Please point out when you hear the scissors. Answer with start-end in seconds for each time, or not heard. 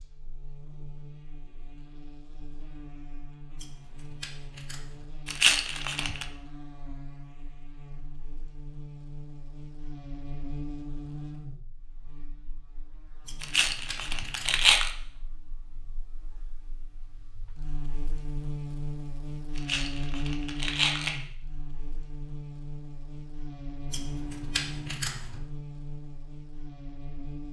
3.5-5.0, 13.2-14.7, 23.9-25.4.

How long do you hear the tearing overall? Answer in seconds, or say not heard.
4 s.